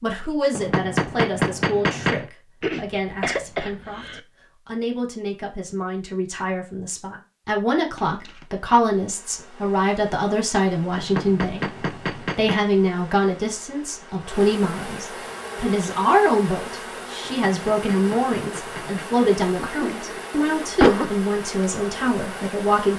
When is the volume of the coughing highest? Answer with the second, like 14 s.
21 s.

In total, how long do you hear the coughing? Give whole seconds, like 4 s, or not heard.
4 s.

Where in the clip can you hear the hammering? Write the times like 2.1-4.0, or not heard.
0.6-2.3, 10.9-12.6, 17.2-19.2.